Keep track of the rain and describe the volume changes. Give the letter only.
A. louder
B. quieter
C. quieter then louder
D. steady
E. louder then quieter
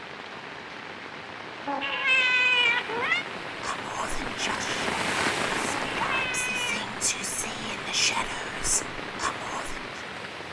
E.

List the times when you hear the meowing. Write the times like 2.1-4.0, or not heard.
1.6-3.2, 6.0-6.8.